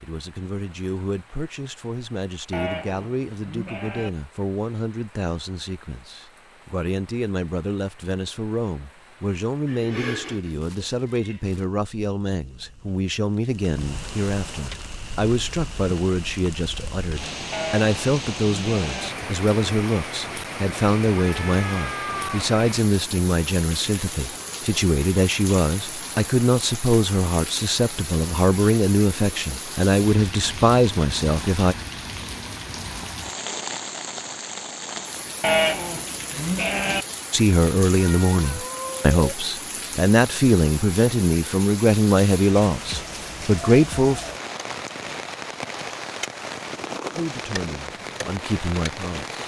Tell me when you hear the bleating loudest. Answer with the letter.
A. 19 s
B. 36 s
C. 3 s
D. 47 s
B.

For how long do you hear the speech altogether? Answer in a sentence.
You can hear the speech for 41 seconds altogether.